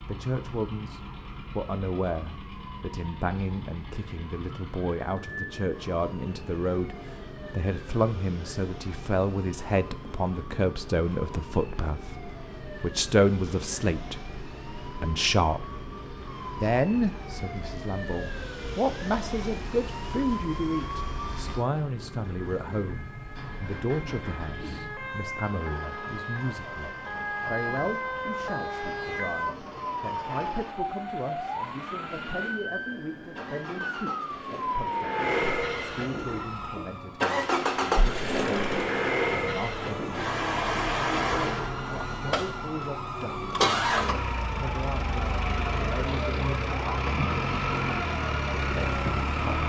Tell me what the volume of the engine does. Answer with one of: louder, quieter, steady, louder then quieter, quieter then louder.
louder.